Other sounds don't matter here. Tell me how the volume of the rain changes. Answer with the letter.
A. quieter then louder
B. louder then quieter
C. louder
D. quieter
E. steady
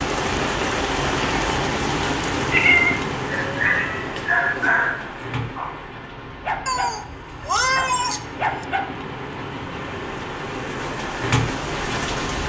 A.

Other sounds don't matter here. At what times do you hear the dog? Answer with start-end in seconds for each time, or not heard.
3.2-8.8.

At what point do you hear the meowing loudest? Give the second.
3 s.